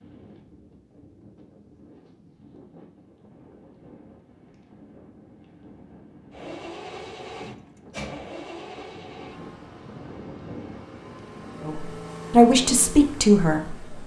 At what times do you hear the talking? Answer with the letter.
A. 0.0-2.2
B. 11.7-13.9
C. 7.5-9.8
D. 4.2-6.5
B.